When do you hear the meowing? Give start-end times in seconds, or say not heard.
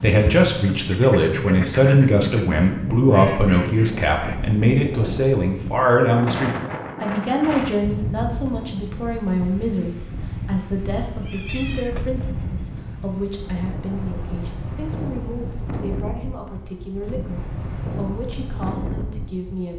11.1-12.3.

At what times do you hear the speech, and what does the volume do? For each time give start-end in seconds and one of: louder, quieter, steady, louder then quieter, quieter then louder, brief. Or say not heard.
0.0-19.7 quieter.